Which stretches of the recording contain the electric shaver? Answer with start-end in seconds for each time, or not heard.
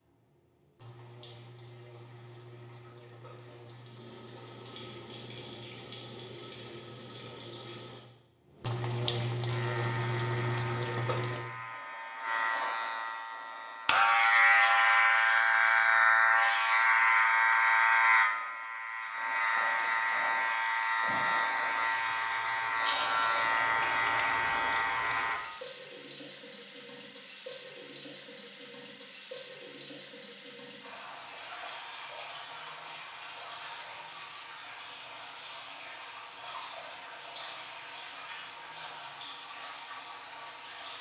9.4-25.4.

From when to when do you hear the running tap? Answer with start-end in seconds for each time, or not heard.
0.0-11.5, 21.6-40.9.